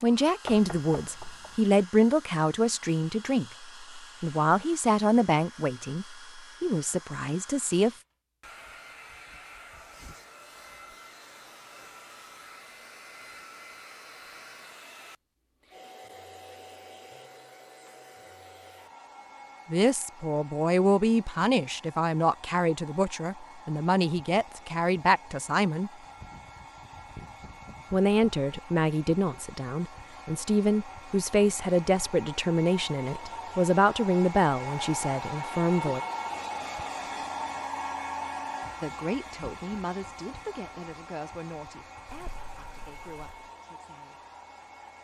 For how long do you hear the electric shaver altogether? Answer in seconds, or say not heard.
not heard.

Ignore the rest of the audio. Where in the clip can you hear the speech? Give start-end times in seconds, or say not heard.
0.0-7.9, 19.7-25.9, 27.9-36.0, 38.8-44.1.